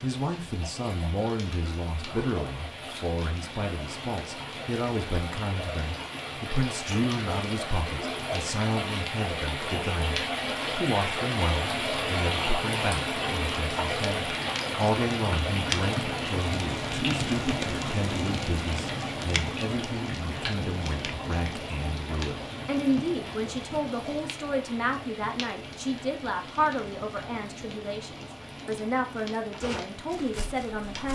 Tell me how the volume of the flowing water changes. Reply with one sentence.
The volume of the flowing water goes up, then down.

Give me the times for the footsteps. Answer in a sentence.
The footsteps can be heard from 29.6 to 31.1 s.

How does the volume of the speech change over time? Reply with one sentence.
The volume of the speech stays about the same.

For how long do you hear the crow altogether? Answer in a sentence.
The crow can't be heard in this clip.